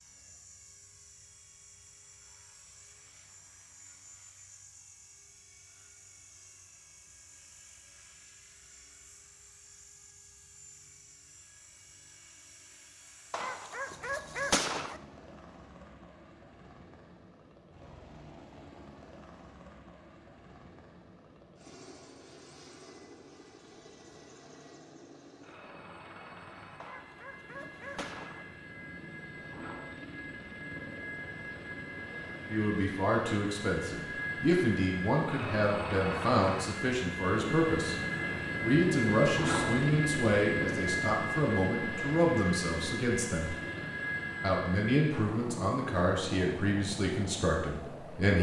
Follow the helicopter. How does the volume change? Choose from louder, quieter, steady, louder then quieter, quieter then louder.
louder.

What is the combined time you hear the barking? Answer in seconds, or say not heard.
3 s.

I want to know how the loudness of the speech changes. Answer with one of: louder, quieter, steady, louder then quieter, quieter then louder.
steady.